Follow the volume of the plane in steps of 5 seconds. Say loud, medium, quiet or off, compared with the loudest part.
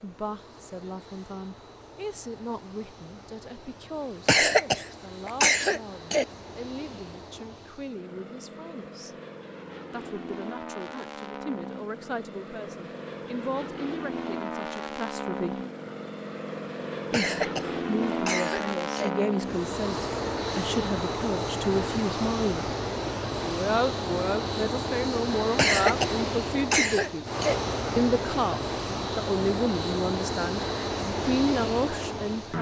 quiet, quiet, medium, loud, loud, loud, loud.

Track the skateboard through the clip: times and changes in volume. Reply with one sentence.
You can't hear the skateboard here.